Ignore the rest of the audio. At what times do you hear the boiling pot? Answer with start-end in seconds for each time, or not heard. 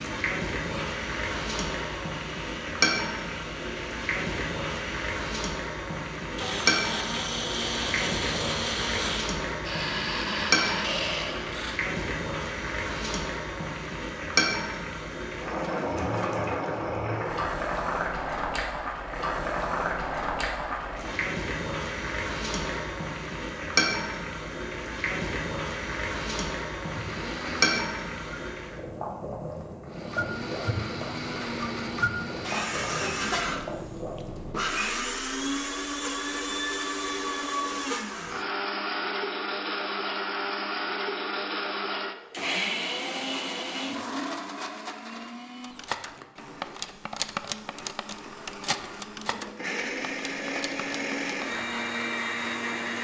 0.0-34.5.